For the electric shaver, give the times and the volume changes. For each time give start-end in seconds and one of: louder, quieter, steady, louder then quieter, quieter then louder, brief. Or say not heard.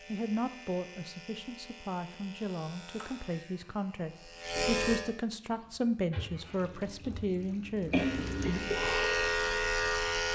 0.0-5.0 louder
7.9-10.3 brief.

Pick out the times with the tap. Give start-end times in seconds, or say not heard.
5.5-8.9.